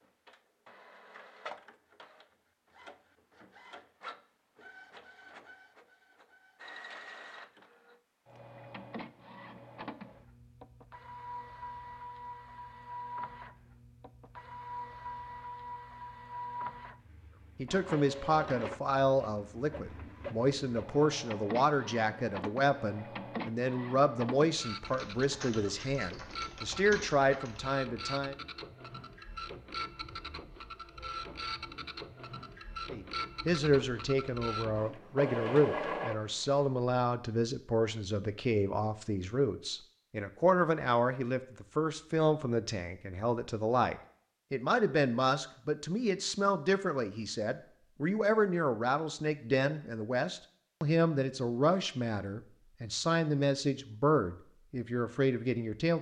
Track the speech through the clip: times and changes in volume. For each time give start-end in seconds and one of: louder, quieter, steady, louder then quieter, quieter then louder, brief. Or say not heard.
17.6-28.4 steady
32.9-55.9 steady.